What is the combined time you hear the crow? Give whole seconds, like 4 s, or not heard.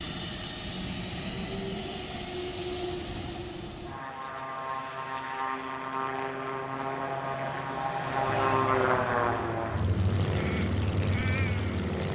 4 s.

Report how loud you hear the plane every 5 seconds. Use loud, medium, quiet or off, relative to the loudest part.
medium, loud, loud.